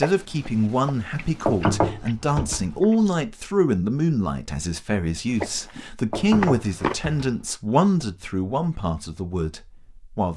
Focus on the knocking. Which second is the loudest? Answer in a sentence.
The volume of the knocking peaks at 2 seconds.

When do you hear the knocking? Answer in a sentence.
You can hear the knocking from 1.4 to 2.8 s and from 6.1 to 7.5 s.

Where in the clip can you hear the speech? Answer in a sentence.
The speech can be heard from 0.0 to 10.3 s.